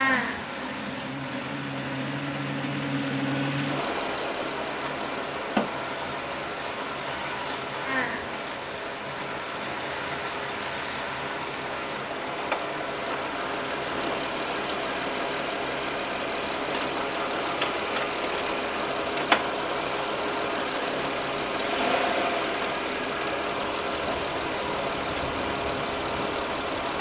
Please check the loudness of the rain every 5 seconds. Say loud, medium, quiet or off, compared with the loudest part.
loud, loud, loud, off, off, off.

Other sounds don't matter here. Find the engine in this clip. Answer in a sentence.
You can hear the engine from 0.0 to 26.9 s.